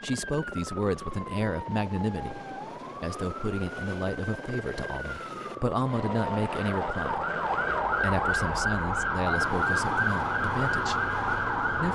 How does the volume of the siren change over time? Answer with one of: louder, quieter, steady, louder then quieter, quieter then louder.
louder.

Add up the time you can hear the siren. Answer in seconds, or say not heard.
12 s.